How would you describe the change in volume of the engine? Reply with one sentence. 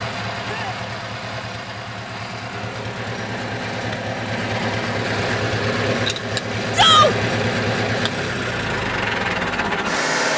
The loudness of the engine goes up.